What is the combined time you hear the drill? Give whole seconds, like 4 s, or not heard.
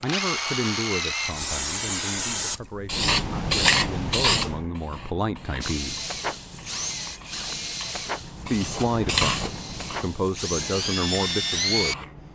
8 s.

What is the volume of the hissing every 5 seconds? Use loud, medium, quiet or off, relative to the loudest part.
loud, medium, quiet.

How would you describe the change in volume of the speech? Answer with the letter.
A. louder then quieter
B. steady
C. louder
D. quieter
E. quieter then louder
E.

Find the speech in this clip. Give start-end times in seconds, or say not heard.
0.0-6.2, 8.4-12.1.